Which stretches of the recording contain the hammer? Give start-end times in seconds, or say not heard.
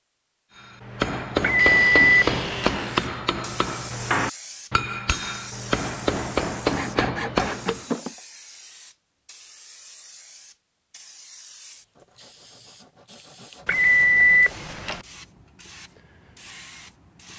0.6-7.8.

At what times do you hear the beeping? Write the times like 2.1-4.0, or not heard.
1.4-2.8, 13.7-15.0.